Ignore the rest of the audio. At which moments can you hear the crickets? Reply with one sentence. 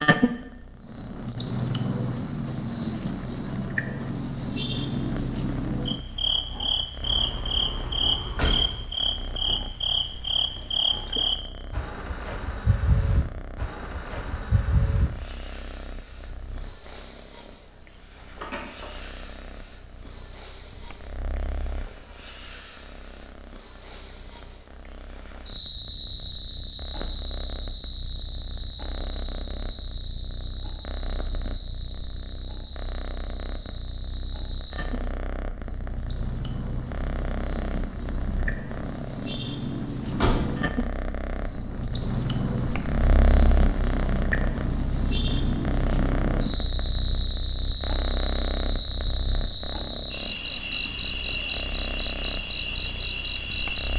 The crickets can be heard from 0.0 to 53.9 s.